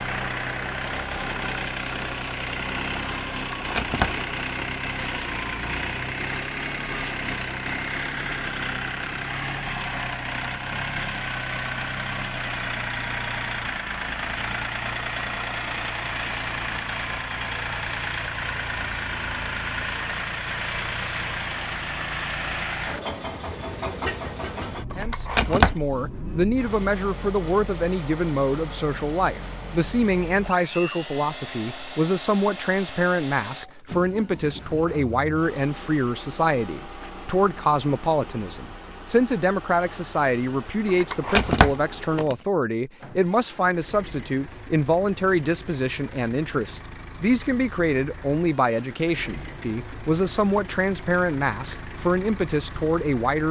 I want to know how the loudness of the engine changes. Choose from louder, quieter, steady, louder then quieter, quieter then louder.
quieter.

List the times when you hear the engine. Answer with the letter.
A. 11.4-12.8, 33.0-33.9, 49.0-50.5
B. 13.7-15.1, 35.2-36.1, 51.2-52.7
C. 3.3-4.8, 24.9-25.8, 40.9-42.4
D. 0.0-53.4
D.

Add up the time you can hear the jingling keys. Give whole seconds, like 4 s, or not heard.
4 s.